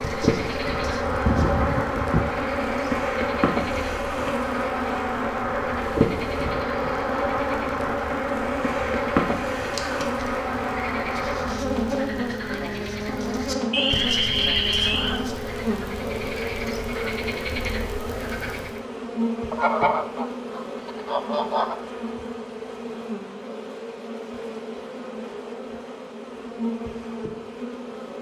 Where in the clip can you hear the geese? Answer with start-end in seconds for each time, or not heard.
0.8-2.4, 13.7-15.2, 19.5-21.8.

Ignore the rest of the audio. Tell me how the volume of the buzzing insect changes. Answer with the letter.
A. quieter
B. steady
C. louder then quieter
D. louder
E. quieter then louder
A.